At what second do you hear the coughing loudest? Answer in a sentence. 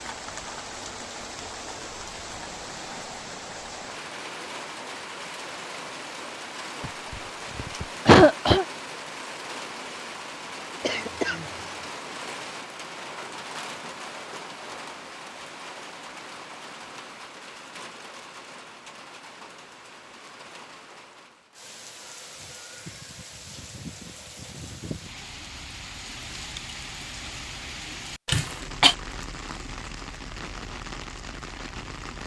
The volume of the coughing peaks at 8 seconds.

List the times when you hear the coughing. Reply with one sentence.
You can hear the coughing from 6.8 to 8.7 s, from 10.8 to 11.8 s and from 28.2 to 28.9 s.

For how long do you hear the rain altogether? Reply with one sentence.
You can hear the rain for 32 seconds altogether.